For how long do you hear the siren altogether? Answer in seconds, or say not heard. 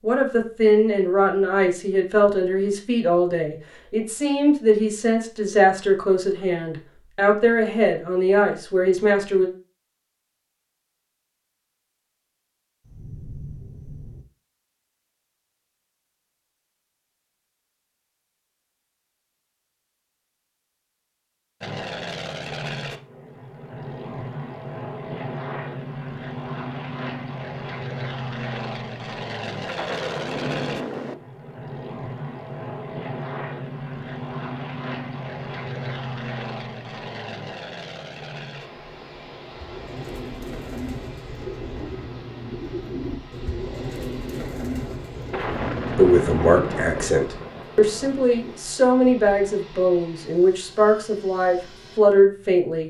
not heard.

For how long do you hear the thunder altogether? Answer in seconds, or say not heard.
6 s.